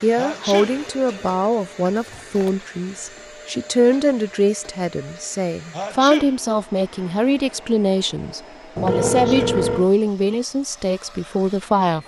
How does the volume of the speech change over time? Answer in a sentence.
The volume of the speech stays about the same.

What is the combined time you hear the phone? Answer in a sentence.
You can hear the phone for 3 seconds altogether.